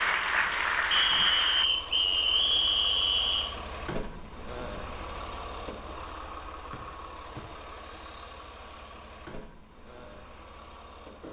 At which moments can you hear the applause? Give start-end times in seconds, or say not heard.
0.0-1.6.